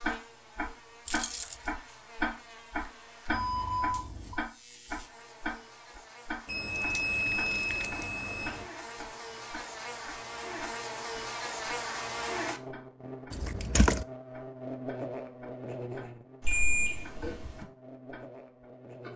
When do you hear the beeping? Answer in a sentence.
The beeping can be heard from 3.2 to 4.4 s, from 6.5 to 8.7 s and from 16.4 to 17.6 s.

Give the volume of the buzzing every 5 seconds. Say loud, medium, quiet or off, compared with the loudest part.
quiet, medium, loud, medium.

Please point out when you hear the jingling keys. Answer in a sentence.
The jingling keys can be heard from 1.1 to 1.6 s, from 6.8 to 8.1 s and from 13.3 to 14.1 s.